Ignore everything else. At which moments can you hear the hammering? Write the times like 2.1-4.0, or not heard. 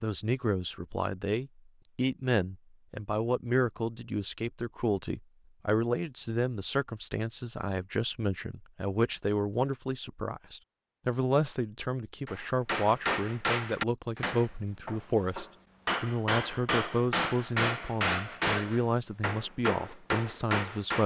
12.2-21.0.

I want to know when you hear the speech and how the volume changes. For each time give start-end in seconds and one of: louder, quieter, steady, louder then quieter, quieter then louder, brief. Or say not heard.
0.0-21.0 steady.